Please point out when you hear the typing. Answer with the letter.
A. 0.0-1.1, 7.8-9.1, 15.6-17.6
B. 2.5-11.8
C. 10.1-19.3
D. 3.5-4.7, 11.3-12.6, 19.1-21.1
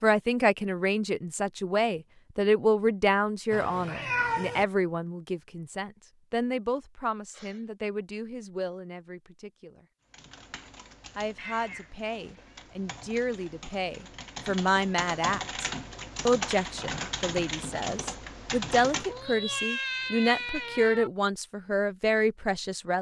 C.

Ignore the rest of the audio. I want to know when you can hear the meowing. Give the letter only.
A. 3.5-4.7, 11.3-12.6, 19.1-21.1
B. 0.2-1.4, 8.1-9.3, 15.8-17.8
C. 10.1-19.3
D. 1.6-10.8
A.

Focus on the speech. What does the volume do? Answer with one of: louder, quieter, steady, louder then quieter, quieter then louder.
quieter then louder.